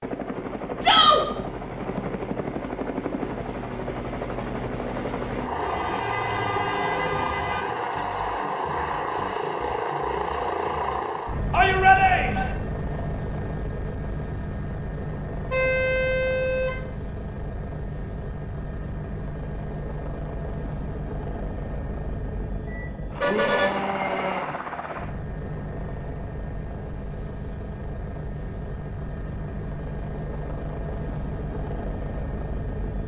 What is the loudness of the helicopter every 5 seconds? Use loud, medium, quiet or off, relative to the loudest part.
loud, loud, loud, medium, medium, medium, medium.